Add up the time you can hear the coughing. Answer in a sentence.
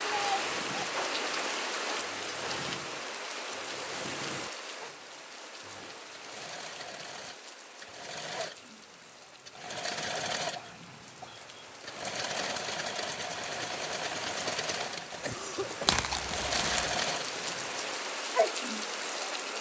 The coughing can be heard for 3 seconds in total.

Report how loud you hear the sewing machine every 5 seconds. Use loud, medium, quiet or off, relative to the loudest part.
medium, medium, loud, loud.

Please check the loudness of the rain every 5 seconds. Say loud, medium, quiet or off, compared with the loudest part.
loud, quiet, medium, loud.